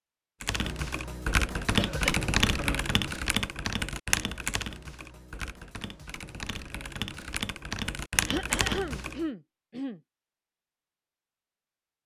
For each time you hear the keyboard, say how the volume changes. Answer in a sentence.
The keyboard can be heard from 0.4 to 9.2 s, getting quieter then louder.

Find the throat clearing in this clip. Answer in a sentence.
You can hear the throat clearing from 1.8 to 2.9 s and from 8.2 to 10.0 s.